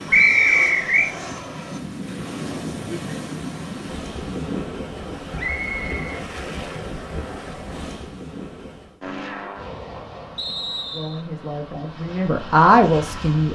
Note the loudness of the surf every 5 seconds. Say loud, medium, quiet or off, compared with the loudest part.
loud, loud, off.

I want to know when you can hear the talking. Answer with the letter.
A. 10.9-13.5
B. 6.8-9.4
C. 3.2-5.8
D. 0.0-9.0
A.